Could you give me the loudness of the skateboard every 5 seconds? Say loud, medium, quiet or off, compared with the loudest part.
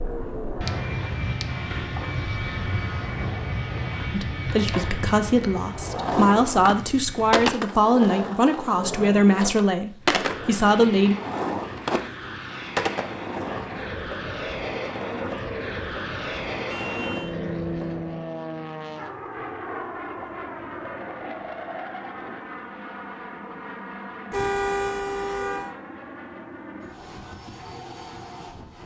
medium, loud, loud, medium, off, off.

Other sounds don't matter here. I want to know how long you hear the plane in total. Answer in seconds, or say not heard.
26 s.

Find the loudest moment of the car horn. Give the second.
25 s.